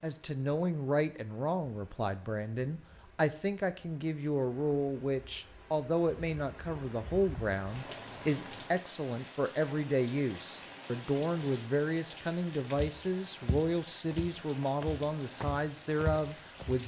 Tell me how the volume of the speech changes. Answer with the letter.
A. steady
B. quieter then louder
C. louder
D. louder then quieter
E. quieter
A.